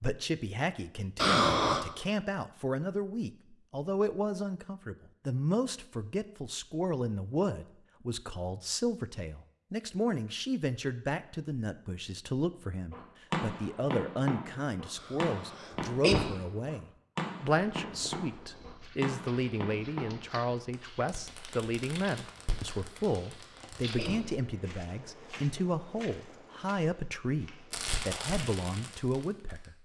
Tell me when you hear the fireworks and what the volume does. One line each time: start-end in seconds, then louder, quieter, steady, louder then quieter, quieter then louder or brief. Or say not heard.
12.9-24.1 quieter
27.7-29.8 brief.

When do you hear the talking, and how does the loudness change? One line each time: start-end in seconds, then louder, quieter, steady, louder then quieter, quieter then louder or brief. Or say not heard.
0.0-29.8 steady.